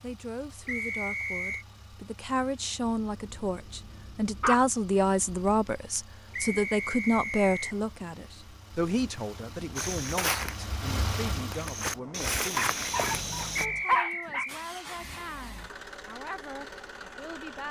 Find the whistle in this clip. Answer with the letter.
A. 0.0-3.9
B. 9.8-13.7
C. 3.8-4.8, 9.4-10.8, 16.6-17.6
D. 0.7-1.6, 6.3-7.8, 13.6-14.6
D.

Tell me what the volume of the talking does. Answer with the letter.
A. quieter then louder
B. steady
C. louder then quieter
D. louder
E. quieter
C.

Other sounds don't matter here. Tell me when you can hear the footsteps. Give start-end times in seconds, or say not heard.
9.8-13.7.